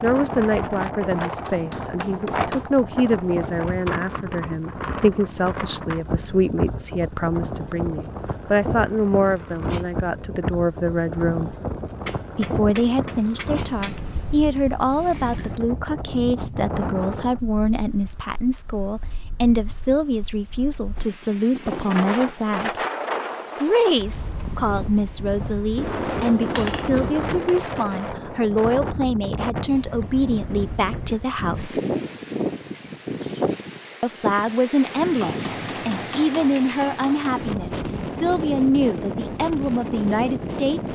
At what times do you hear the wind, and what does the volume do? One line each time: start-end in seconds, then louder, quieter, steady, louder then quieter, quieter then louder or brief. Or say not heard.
0.0-40.9 steady.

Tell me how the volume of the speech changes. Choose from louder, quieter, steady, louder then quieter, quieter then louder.
steady.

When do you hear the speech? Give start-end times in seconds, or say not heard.
0.0-11.5, 12.3-22.8, 23.6-31.8, 34.0-40.8.